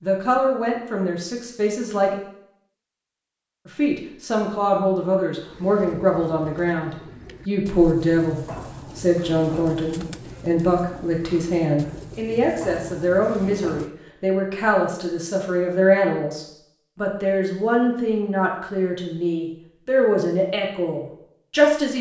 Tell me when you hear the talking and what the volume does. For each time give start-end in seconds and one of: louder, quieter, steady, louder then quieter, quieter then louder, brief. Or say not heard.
0.0-2.1 brief
3.6-21.9 steady.